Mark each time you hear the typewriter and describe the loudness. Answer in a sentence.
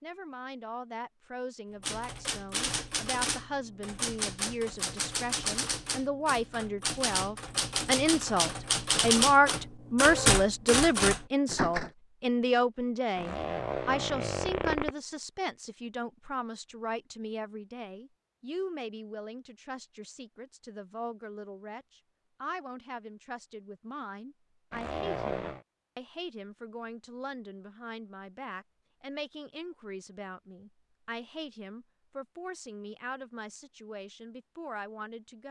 You can hear the typewriter from 1.8 to 11.9 s, getting louder.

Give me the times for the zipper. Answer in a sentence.
The zipper can be heard from 13.2 to 14.9 s and from 24.7 to 25.6 s.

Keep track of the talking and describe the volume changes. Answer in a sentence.
The volume of the talking goes up, then down.